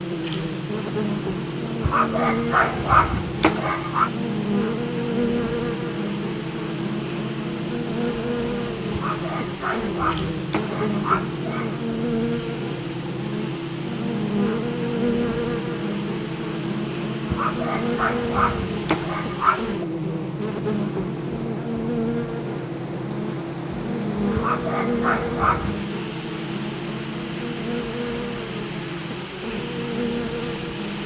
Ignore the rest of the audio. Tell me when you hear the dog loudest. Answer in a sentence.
The loudest moment of the dog is at 3 seconds.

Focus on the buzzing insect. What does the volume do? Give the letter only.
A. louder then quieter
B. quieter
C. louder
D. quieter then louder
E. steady
E.